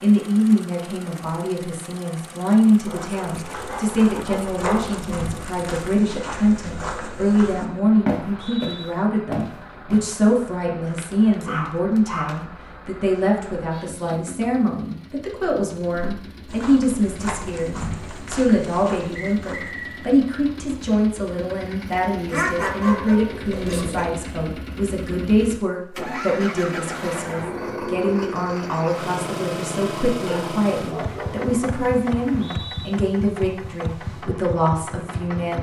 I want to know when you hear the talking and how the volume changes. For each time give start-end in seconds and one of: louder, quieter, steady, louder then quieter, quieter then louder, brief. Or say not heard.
0.0-35.5 steady.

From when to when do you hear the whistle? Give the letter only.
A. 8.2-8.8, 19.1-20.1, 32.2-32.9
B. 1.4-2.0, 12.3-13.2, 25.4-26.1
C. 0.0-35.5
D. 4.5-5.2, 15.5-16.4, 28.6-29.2
A.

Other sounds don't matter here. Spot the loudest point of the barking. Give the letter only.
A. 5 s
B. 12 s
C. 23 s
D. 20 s
C.